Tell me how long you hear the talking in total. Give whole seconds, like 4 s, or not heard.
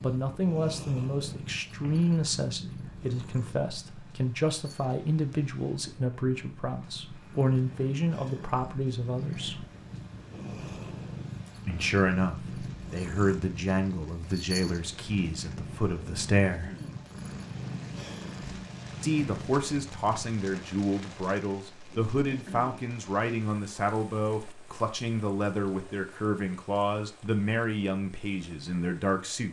25 s.